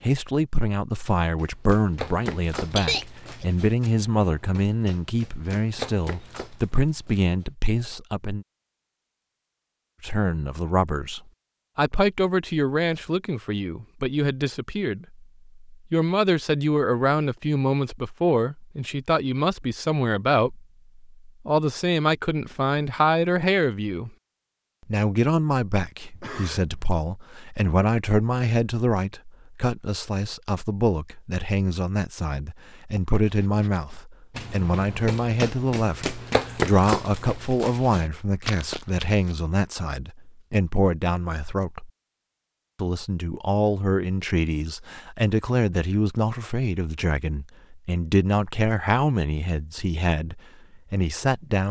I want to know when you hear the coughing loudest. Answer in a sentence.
The volume of the coughing peaks at 3 seconds.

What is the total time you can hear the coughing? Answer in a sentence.
The coughing can be heard for 2 seconds in total.